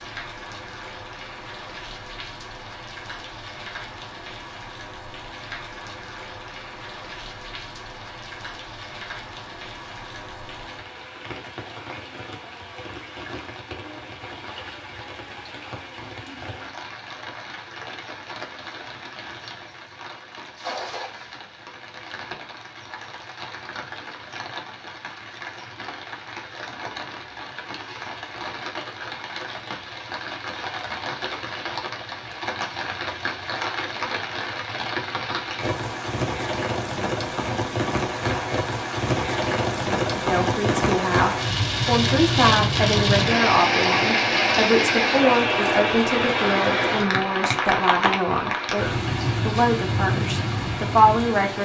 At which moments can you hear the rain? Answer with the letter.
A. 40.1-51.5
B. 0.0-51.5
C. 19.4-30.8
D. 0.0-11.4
B.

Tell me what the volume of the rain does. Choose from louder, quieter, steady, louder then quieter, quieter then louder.
louder.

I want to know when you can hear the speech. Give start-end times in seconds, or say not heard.
40.1-51.5.